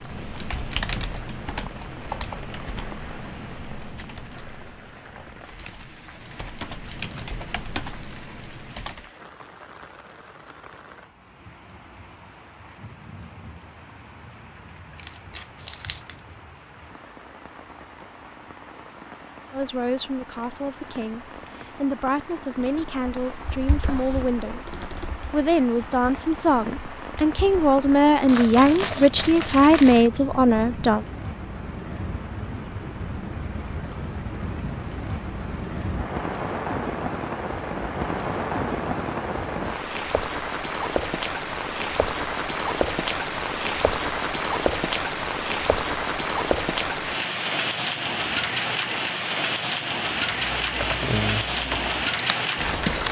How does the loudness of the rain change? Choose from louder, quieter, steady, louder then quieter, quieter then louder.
louder.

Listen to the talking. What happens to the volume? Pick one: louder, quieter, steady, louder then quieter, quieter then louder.
louder.